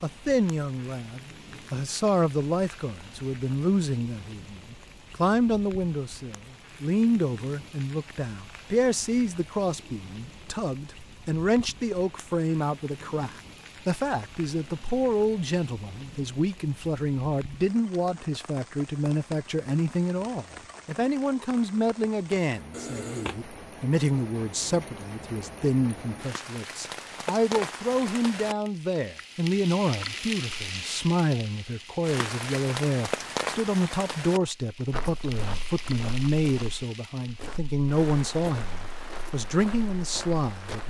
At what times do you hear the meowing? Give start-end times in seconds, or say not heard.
22.7-23.4.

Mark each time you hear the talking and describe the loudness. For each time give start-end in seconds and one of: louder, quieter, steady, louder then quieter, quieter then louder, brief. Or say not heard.
0.0-40.8 steady.